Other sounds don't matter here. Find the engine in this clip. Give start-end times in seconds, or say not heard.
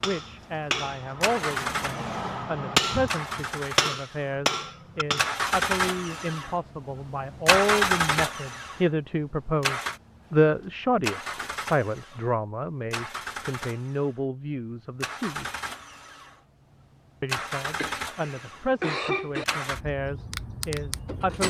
0.1-21.4.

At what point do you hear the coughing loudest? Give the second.
19 s.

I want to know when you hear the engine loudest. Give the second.
8 s.